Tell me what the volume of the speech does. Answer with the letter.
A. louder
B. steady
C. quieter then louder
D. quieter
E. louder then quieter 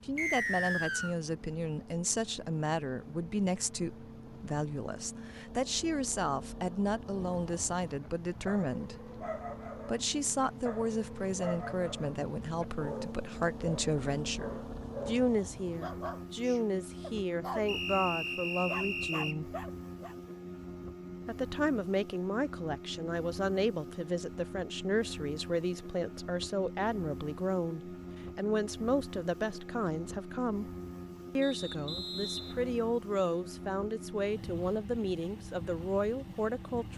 B.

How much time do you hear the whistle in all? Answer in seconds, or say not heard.
4 s.